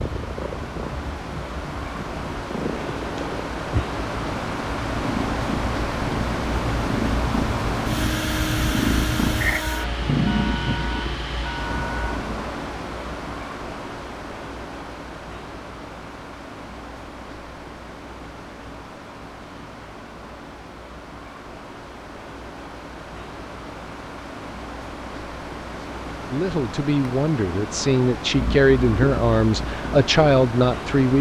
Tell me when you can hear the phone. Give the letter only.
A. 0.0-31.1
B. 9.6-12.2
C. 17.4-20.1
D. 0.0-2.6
B.